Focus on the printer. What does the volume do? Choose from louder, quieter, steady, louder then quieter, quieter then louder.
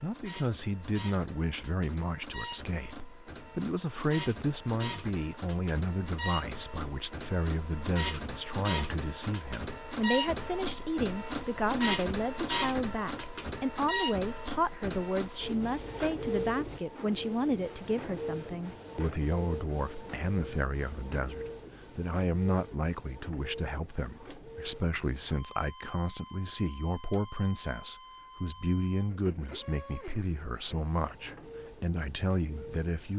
louder then quieter.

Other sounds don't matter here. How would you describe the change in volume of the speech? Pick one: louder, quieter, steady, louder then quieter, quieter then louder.
steady.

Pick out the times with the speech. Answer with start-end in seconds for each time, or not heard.
0.0-33.1.